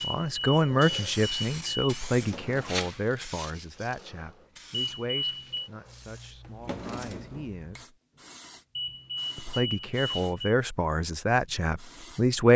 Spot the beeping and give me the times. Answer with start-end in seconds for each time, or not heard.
0.0-2.0, 4.7-5.7, 8.8-10.5.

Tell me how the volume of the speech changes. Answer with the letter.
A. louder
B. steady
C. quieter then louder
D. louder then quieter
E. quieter
C.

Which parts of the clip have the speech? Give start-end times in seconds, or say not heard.
0.0-8.0, 9.3-12.5.